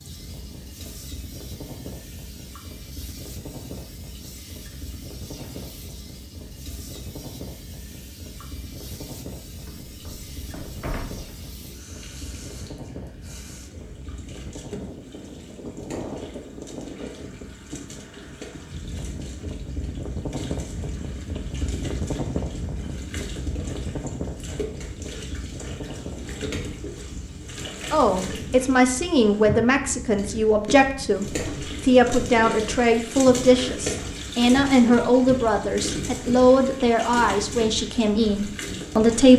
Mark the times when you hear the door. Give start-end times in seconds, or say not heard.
9.7-11.3.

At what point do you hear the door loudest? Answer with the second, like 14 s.
11 s.